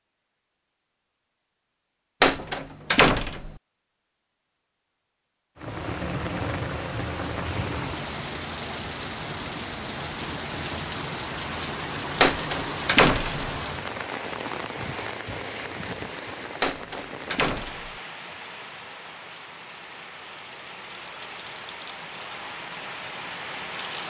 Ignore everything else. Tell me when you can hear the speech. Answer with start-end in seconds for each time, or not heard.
not heard.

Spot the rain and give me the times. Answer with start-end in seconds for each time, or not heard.
5.5-24.0.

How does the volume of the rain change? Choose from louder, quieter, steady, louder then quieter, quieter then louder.
quieter.